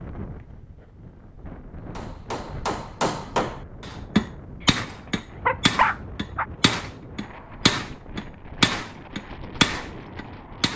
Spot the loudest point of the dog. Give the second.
6 s.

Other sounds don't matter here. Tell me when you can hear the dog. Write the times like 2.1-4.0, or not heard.
4.6-6.5.